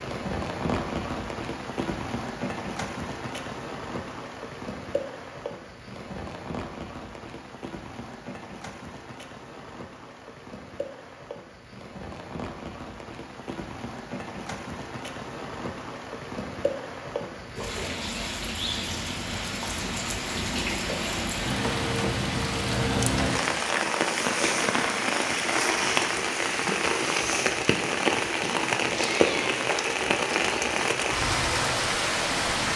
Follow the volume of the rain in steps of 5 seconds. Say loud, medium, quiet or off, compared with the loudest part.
medium, quiet, quiet, medium, loud, loud, loud.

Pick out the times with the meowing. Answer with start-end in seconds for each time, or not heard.
28.4-29.6.